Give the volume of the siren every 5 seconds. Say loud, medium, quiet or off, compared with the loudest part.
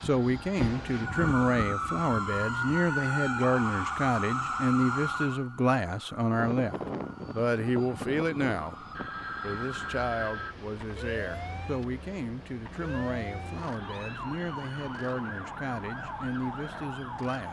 loud, medium, medium, medium.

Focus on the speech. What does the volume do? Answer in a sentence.
The loudness of the speech goes down.